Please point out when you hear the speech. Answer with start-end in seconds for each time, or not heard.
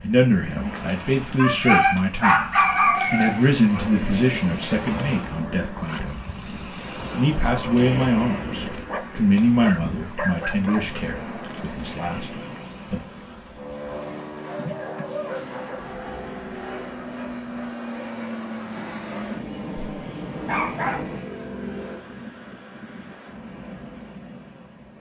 0.0-6.2, 7.1-13.0.